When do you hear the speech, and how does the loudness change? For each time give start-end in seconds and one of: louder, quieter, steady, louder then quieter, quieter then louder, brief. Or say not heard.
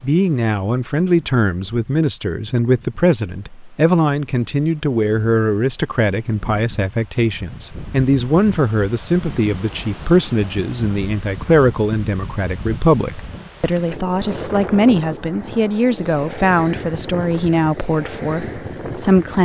0.0-19.4 steady.